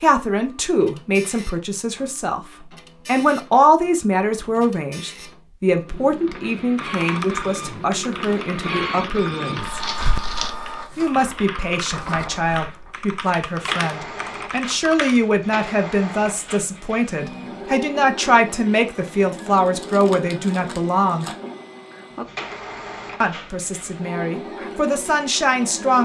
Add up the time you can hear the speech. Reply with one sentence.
You can hear the speech for 23 seconds altogether.